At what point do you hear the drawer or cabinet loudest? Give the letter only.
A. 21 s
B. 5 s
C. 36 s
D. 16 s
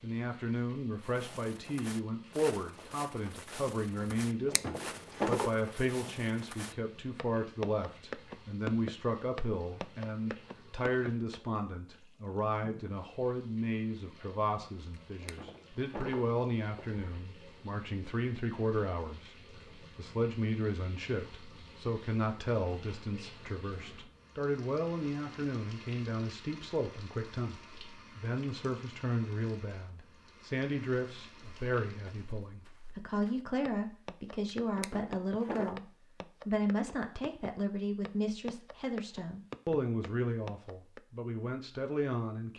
B.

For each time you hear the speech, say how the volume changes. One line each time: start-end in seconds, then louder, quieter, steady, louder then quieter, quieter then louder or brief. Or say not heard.
0.0-35.9 steady
36.5-42.5 steady.